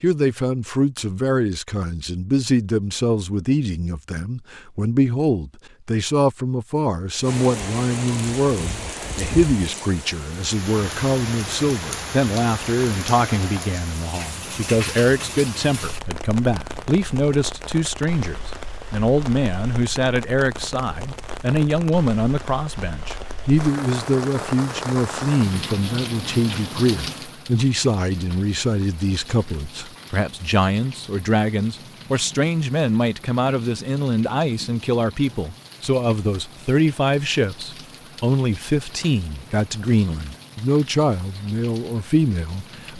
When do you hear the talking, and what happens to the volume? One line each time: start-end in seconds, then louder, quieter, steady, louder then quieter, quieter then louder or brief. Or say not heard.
0.0-42.9 steady.